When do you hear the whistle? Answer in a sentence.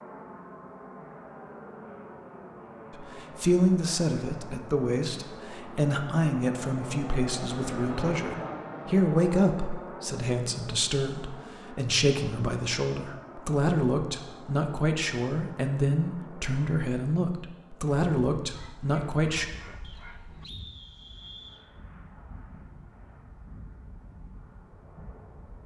You can hear the whistle from 19.8 to 21.6 s.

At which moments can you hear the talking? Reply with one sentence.
The talking can be heard from 2.9 to 19.4 s.